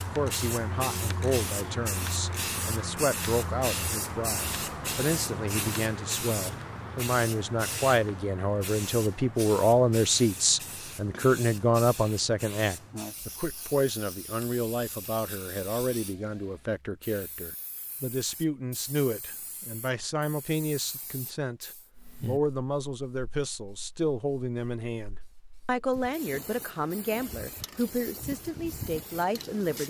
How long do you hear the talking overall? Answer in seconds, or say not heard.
30 s.